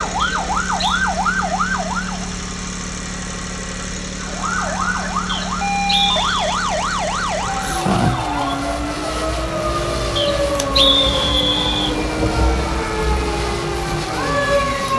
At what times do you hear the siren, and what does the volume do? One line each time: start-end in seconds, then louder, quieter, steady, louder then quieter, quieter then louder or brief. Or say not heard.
0.0-2.3 brief
4.2-14.9 steady.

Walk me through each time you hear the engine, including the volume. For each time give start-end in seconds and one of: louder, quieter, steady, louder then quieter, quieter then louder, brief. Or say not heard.
0.0-14.9 steady.